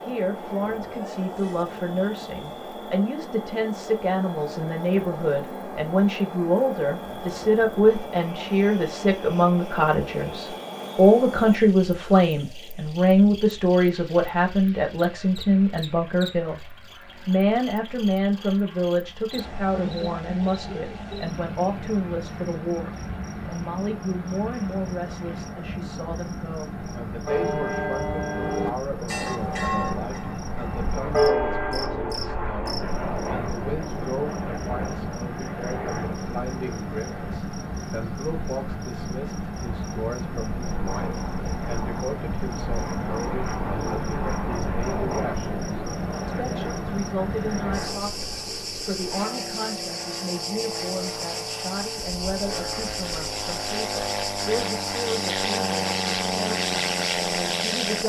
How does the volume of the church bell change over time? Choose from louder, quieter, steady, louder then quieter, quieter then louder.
quieter then louder.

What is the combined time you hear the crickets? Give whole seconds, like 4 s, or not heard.
58 s.